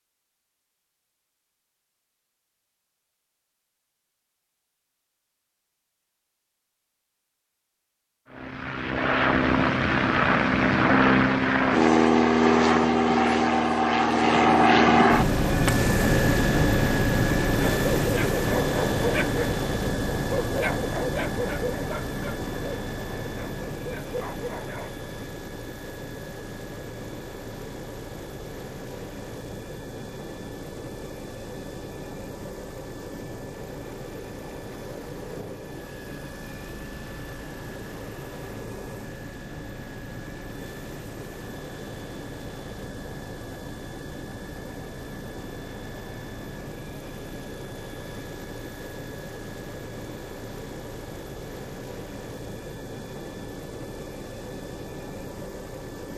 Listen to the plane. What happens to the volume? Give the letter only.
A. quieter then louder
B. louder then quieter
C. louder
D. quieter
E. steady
D.